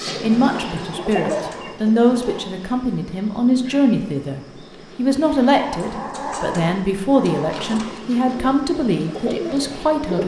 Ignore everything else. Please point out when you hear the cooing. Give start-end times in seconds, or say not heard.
0.0-2.0, 8.3-10.2.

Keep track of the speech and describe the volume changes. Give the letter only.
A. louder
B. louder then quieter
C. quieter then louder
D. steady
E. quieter
D.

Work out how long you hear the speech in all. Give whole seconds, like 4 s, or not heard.
10 s.